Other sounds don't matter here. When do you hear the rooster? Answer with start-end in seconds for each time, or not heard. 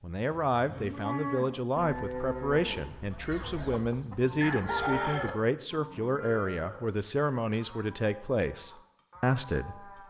3.3-5.3.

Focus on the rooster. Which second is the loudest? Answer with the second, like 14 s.
5 s.